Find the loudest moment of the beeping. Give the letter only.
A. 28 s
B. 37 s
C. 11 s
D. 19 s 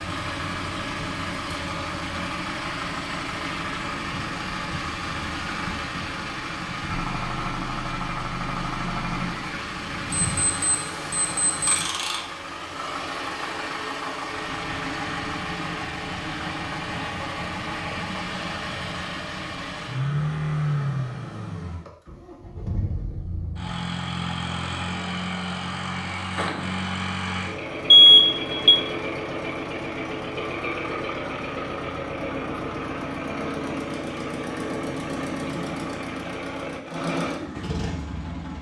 A.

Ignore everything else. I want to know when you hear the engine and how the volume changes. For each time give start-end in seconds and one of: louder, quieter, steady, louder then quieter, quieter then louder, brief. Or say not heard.
0.0-38.5 steady.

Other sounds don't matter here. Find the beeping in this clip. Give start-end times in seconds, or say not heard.
10.1-11.8, 27.9-28.8.